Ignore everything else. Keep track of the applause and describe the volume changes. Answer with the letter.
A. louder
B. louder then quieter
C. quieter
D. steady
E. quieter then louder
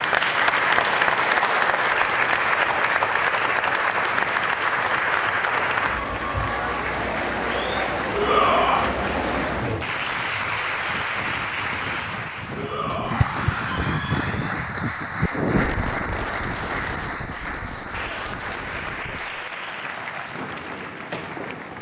C.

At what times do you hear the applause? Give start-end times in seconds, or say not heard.
0.0-21.7.